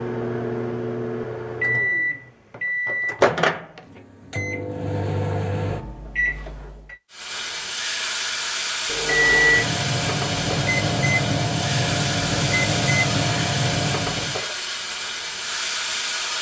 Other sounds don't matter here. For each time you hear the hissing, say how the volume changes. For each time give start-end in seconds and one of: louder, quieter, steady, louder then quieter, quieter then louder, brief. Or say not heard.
7.1-16.3 steady.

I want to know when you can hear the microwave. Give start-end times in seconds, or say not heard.
0.0-7.0, 8.8-14.4.